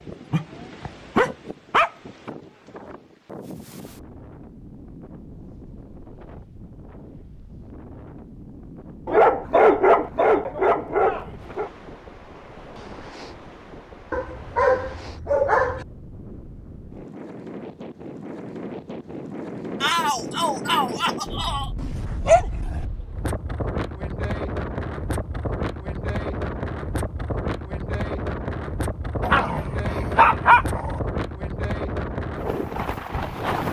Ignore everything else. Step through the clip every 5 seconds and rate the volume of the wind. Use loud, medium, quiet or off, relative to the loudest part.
quiet, quiet, quiet, medium, loud, loud, loud.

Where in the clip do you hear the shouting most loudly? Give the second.
20 s.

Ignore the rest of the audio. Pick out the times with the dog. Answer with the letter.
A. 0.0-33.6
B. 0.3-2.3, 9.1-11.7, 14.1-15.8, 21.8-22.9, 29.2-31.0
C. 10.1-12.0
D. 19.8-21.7
B.